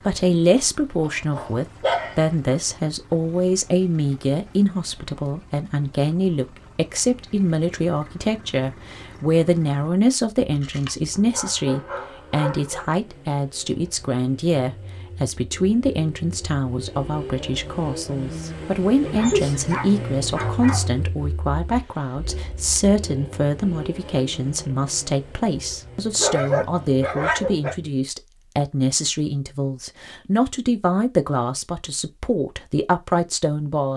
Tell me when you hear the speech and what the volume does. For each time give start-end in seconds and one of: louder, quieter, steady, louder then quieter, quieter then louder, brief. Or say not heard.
0.0-33.9 steady.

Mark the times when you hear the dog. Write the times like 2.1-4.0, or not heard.
1.0-2.3, 10.6-12.8, 19.1-20.9, 26.1-27.8.